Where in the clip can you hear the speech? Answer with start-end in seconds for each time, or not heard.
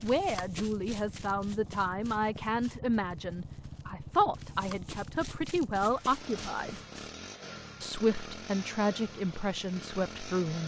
0.0-6.8, 7.8-10.6.